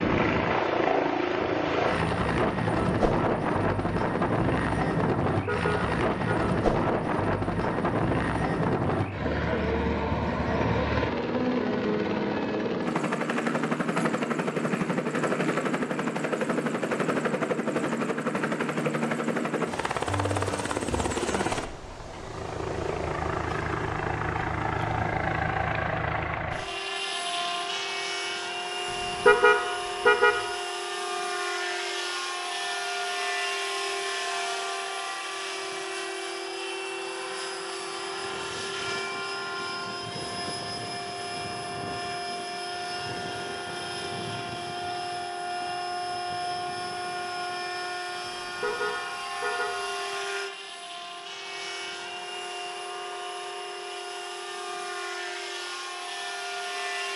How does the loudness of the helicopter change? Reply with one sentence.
The loudness of the helicopter goes down.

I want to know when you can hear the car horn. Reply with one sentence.
You can hear the car horn from 5.5 to 6.4 s, from 29.2 to 30.4 s and from 48.6 to 49.8 s.